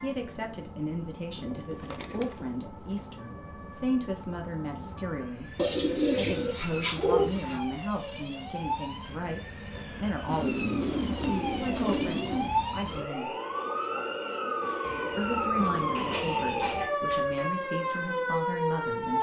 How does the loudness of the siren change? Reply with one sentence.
The volume of the siren goes up.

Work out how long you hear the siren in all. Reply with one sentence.
The siren can be heard for 19 seconds in total.